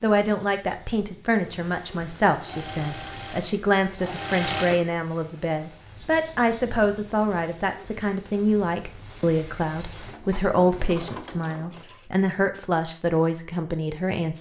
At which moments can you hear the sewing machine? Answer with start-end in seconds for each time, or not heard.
2.4-4.9, 9.9-12.1.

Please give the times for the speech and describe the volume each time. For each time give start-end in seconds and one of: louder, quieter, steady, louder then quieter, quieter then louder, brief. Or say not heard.
0.0-14.3 steady.